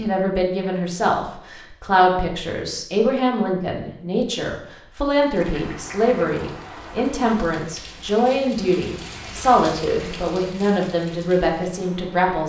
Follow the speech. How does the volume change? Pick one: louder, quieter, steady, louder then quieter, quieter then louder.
steady.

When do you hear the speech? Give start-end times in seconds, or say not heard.
0.0-12.4.